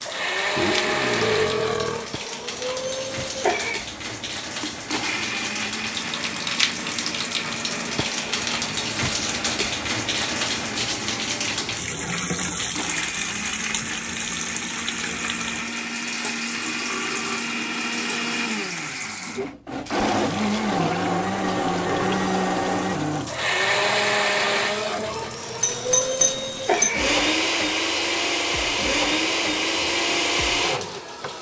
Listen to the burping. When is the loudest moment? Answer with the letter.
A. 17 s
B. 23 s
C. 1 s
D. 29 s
C.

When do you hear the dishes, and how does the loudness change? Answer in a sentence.
The dishes can't be heard in this clip.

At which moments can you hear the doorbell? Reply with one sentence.
You can hear the doorbell from 25.6 to 26.9 s.